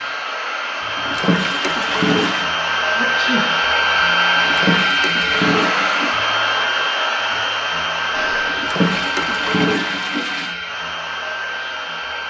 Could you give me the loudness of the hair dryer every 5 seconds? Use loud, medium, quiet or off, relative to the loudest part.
loud, loud, medium.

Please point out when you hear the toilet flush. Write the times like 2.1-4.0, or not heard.
0.9-2.5, 4.3-6.2, 8.5-10.6.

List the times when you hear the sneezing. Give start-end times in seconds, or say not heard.
3.0-3.6, 8.1-8.7.